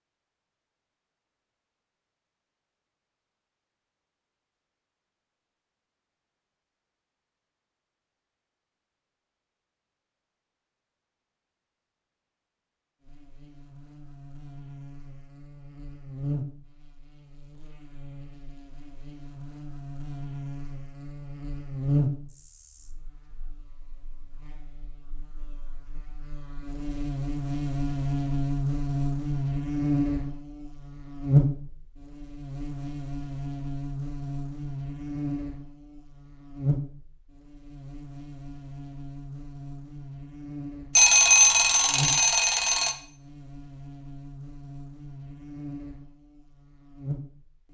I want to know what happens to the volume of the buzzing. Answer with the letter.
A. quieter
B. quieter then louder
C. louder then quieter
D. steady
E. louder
C.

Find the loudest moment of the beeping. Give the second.
41 s.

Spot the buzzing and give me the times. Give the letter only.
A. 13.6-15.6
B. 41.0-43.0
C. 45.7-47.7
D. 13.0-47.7
D.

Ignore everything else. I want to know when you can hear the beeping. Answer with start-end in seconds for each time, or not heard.
41.0-43.0.